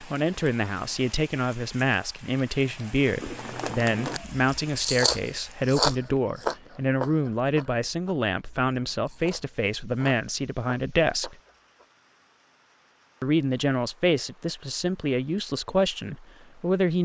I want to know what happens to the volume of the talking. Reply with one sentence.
The volume of the talking stays about the same.